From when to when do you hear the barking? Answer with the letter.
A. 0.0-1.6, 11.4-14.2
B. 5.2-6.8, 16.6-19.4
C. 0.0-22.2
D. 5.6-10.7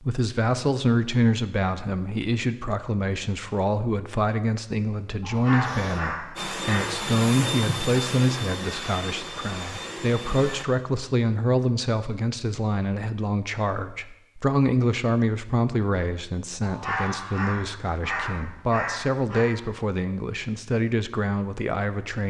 B.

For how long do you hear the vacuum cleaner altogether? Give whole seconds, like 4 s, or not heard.
5 s.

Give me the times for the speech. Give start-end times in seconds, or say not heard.
0.0-22.2.